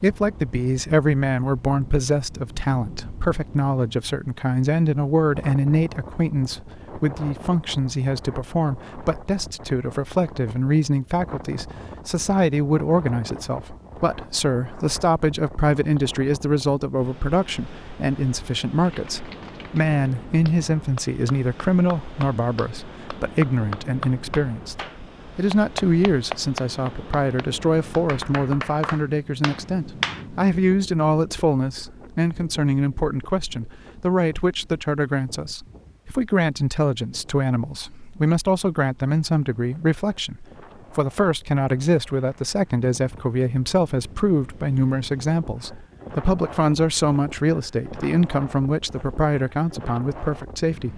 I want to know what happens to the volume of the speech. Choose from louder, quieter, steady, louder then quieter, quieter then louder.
steady.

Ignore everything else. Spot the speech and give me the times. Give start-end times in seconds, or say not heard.
0.0-50.9.